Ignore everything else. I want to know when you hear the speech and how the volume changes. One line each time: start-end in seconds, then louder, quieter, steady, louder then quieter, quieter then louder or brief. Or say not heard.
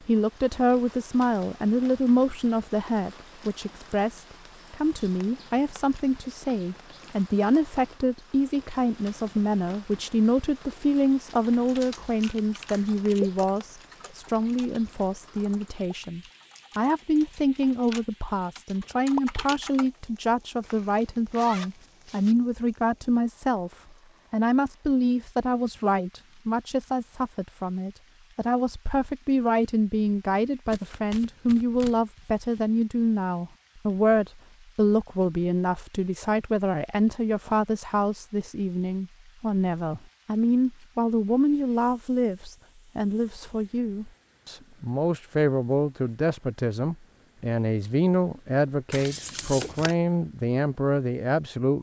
0.1-51.7 steady.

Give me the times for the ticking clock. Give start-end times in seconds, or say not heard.
not heard.